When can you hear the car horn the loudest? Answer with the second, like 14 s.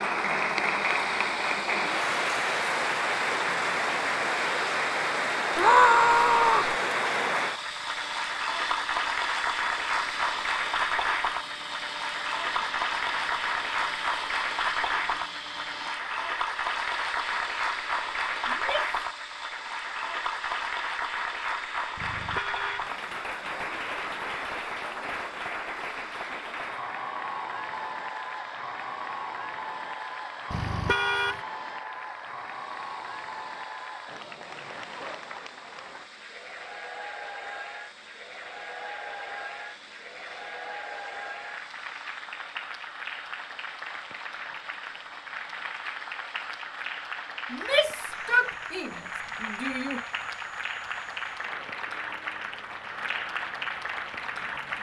31 s.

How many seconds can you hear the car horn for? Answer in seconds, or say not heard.
2 s.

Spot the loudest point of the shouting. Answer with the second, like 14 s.
6 s.